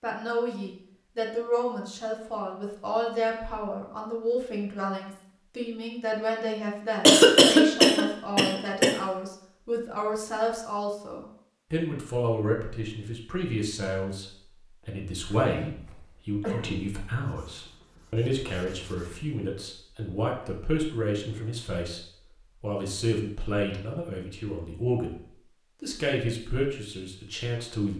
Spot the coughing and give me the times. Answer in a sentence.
The coughing can be heard from 7.0 to 8.9 s and from 15.3 to 16.9 s.